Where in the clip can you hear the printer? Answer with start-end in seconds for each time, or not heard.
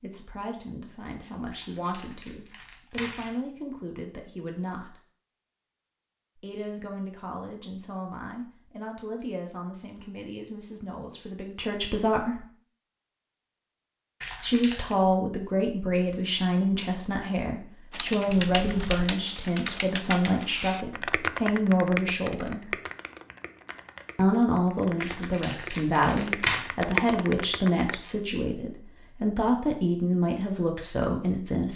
not heard.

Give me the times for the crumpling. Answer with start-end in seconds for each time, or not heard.
1.5-3.4, 14.2-14.9, 25.0-26.6.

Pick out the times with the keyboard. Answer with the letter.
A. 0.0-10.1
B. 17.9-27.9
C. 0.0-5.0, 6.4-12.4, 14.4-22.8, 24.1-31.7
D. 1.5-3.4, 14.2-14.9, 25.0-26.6
B.